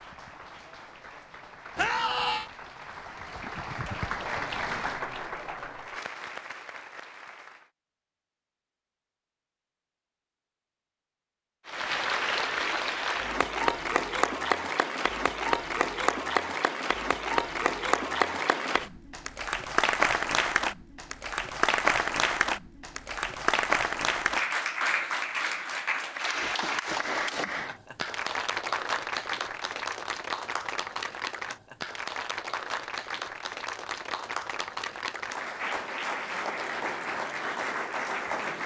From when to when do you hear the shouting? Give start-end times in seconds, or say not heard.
1.8-2.5.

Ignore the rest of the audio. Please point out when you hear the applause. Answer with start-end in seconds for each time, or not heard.
0.0-7.7, 11.7-38.6.